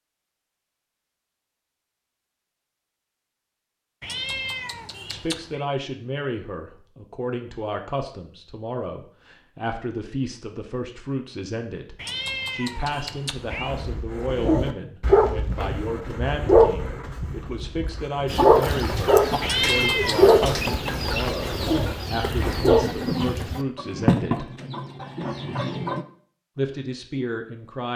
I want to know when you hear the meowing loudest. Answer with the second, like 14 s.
20 s.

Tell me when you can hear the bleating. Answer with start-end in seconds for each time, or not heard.
not heard.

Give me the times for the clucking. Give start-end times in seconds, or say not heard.
18.2-26.1.